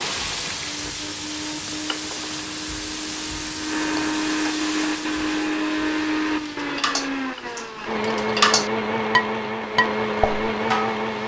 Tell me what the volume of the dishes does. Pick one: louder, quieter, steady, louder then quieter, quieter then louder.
louder then quieter.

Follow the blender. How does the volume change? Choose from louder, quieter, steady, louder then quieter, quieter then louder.
louder.